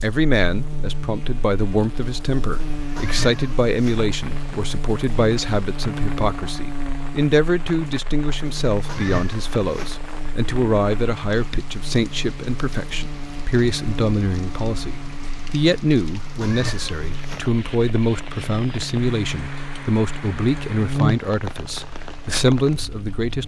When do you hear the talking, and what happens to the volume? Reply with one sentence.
You can hear the talking from 0.0 to 23.4 s, at a steady volume.